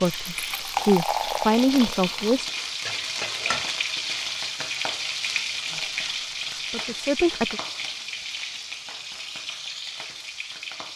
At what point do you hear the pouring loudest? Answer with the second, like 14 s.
1 s.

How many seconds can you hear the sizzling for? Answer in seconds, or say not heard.
11 s.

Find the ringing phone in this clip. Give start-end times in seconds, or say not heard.
not heard.